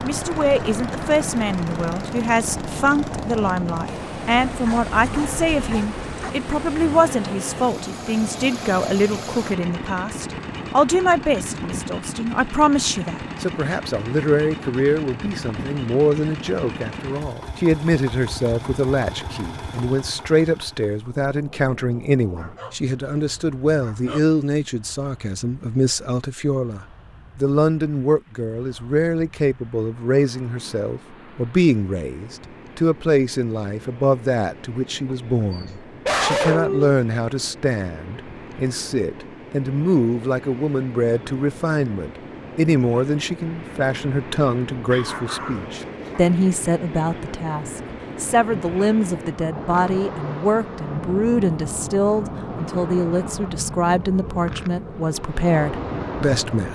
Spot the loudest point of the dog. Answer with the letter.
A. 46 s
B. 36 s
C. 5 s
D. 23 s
B.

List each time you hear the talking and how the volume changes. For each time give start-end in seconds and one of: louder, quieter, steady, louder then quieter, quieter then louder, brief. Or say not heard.
0.0-56.7 steady.